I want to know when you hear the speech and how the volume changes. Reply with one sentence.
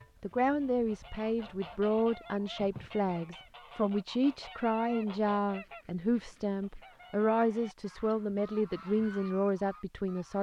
You can hear the speech from 0.2 to 10.3 s, at a steady volume.